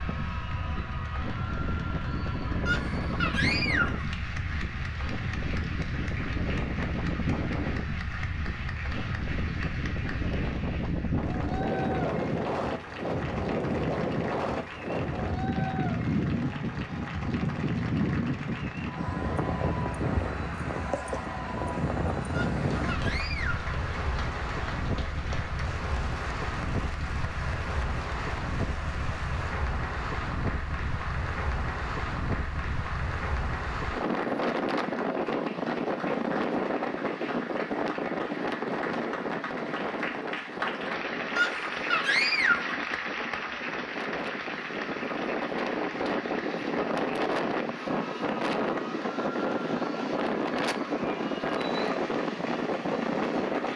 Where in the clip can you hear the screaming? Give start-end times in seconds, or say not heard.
2.6-4.0, 22.3-23.6, 41.4-42.8.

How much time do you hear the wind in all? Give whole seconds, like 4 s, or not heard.
54 s.